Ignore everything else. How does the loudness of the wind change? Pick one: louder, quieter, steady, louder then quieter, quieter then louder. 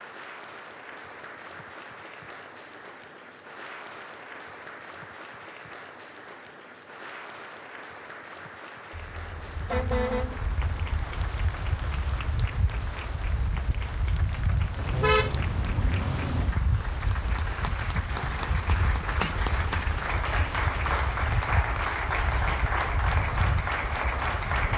steady.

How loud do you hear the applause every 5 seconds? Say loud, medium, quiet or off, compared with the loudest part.
quiet, quiet, quiet, medium, loud.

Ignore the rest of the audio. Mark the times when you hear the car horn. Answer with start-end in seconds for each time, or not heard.
8.9-10.4, 14.8-16.6.